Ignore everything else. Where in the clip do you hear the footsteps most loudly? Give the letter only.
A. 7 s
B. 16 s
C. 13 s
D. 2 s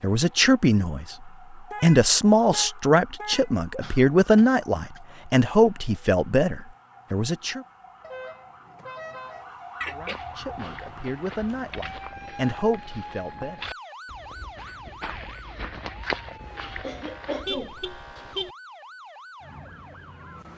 B.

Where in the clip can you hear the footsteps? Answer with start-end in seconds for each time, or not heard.
10.1-17.6.